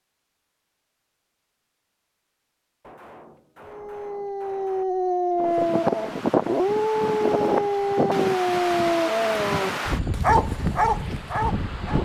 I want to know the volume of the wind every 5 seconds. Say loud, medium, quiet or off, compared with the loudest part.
off, loud, loud.